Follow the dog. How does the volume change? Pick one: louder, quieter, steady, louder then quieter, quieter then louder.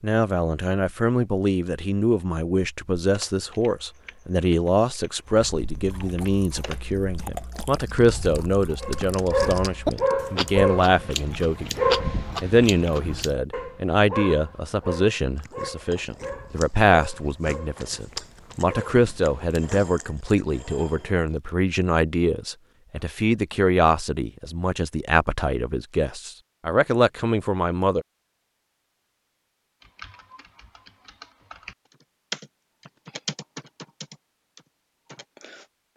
quieter.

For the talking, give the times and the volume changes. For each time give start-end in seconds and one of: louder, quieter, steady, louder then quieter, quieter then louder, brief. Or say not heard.
0.0-28.1 steady.